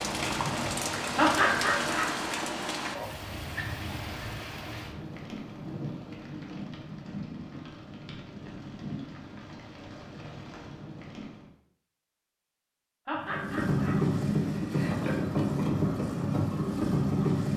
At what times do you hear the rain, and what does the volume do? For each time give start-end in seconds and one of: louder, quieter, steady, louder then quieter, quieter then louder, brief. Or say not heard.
0.0-11.5 quieter.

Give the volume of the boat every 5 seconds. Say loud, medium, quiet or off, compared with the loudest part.
quiet, off, loud, loud.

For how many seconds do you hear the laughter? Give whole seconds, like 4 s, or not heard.
2 s.